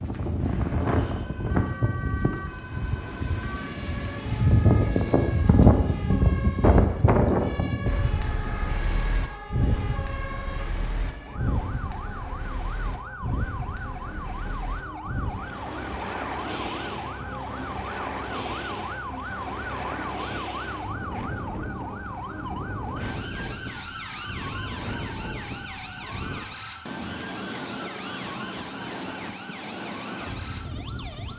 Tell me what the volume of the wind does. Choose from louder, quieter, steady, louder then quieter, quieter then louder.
quieter.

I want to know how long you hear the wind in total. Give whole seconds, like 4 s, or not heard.
31 s.